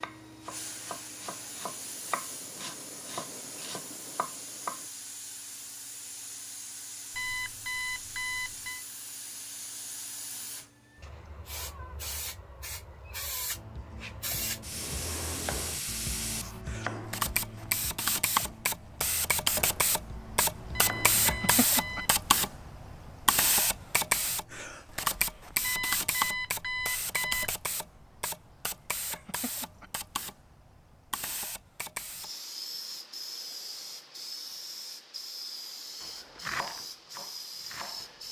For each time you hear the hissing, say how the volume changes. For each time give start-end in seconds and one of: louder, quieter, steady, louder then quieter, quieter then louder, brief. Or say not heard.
0.0-38.2 louder then quieter.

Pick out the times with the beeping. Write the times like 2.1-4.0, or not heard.
7.2-8.8, 20.7-22.1, 25.6-27.6.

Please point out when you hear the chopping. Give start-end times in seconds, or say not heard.
0.0-4.9, 13.5-21.6, 36.0-38.2.